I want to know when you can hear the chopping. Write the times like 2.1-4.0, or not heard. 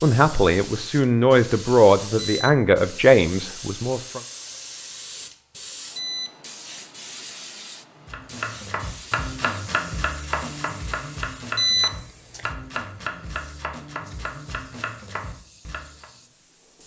8.1-16.1.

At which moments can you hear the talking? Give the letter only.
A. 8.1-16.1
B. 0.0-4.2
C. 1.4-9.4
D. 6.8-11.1
B.